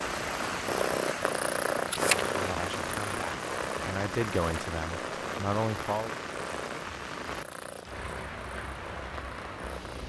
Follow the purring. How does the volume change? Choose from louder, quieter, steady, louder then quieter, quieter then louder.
quieter.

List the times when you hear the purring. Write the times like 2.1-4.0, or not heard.
0.0-10.0.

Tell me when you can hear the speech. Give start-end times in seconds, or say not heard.
2.4-6.1.